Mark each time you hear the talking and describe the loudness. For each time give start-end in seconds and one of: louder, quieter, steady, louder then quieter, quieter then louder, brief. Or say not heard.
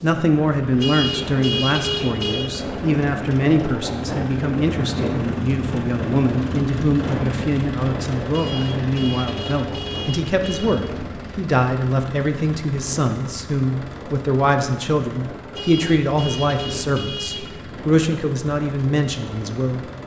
0.0-19.9 steady.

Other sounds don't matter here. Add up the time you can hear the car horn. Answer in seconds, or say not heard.
6 s.